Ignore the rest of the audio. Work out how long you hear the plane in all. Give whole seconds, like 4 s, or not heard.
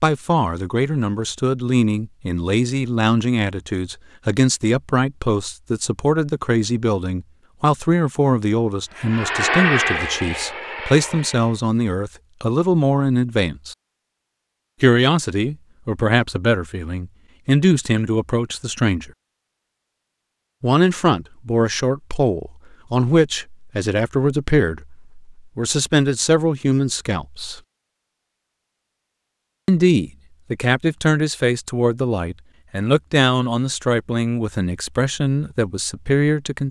3 s.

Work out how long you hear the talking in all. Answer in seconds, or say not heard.
32 s.